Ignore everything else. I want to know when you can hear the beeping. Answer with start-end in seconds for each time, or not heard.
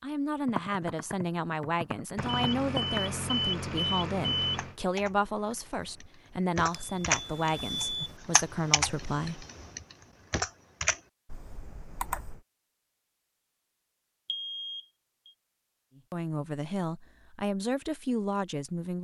2.1-4.8, 6.7-8.2, 14.2-15.3.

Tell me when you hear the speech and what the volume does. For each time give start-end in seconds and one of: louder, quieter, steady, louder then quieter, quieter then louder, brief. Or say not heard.
0.0-9.4 steady
15.9-18.9 brief.